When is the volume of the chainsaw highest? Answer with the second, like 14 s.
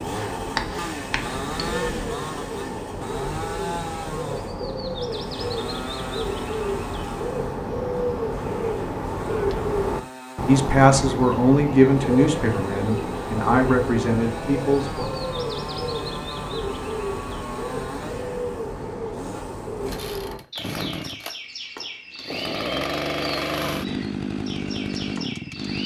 23 s.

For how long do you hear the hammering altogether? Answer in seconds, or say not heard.
2 s.